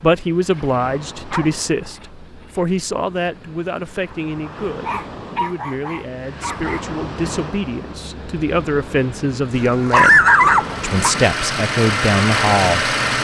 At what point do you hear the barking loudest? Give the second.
10 s.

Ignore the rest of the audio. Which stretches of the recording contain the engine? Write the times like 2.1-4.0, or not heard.
10.4-13.1.